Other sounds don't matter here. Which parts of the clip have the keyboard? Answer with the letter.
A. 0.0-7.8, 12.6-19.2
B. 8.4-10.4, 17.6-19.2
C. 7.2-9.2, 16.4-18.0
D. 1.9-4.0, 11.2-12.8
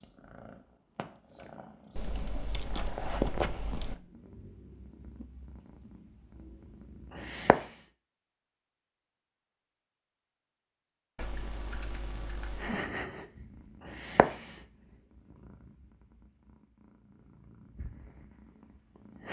D.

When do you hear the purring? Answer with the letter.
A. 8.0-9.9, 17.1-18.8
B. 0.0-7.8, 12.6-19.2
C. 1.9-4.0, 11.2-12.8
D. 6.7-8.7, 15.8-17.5
B.